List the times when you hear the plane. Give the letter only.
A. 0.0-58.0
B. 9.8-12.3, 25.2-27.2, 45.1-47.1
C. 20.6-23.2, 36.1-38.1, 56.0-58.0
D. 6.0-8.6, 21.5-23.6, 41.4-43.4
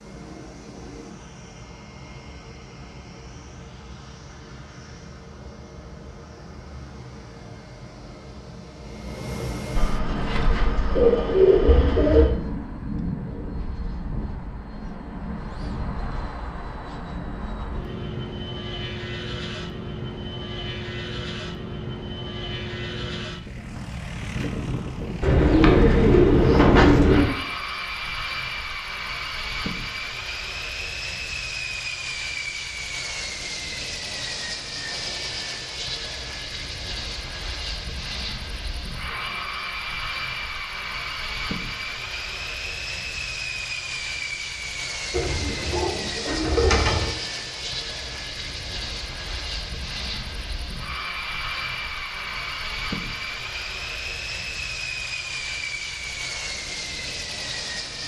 A.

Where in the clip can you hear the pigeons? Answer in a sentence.
You can hear the pigeons from 9.8 to 12.3 s, from 25.2 to 27.2 s and from 45.1 to 47.1 s.